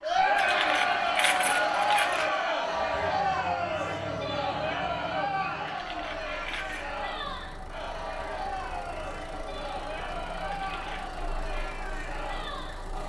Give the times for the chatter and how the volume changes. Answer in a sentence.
The chatter can be heard from 0.0 to 13.0 s, getting quieter.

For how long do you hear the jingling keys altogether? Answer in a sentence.
The jingling keys can be heard for 4 seconds in total.